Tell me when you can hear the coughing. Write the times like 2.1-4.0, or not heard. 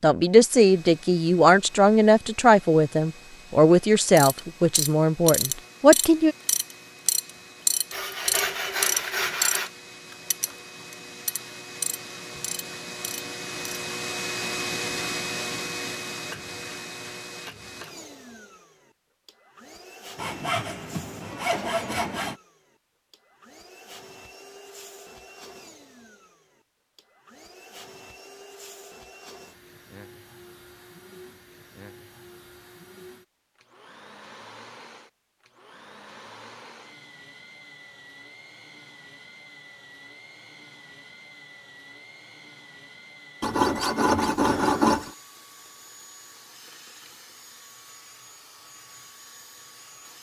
not heard.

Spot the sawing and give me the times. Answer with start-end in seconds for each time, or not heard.
7.9-9.7, 20.1-22.4, 43.4-45.1.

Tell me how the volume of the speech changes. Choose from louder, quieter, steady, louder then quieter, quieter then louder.
steady.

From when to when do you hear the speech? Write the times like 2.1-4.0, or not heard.
0.0-6.3.